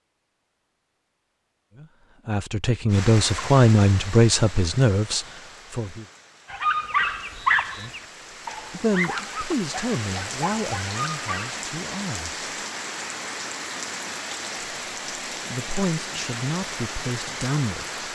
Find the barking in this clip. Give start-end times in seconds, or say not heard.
6.5-11.6.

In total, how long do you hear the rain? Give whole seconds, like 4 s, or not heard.
15 s.